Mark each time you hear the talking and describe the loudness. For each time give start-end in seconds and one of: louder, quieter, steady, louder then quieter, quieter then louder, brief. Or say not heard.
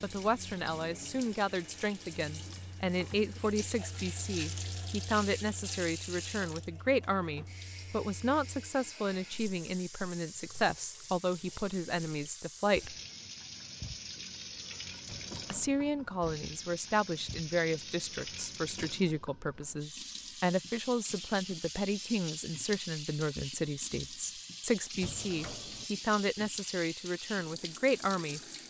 0.0-12.9 steady
15.5-28.4 steady.